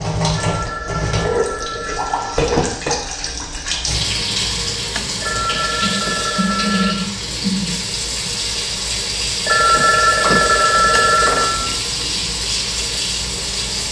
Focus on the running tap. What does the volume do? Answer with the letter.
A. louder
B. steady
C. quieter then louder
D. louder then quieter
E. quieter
B.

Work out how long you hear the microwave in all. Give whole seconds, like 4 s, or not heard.
not heard.